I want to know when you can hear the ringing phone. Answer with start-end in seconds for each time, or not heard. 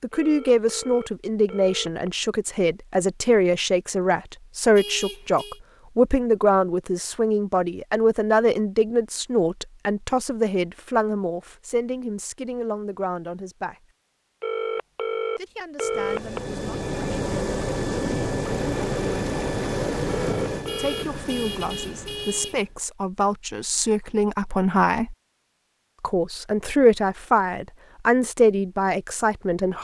0.1-2.1, 14.4-16.4, 20.1-21.1.